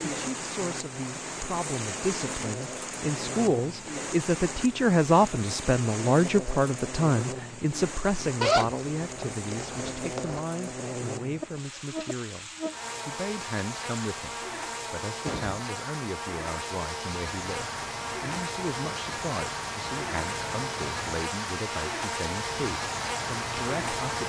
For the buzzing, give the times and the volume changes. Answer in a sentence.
You can hear the buzzing from 0.1 to 24.2 s, getting louder.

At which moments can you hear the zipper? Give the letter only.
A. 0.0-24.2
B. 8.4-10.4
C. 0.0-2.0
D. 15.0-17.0
B.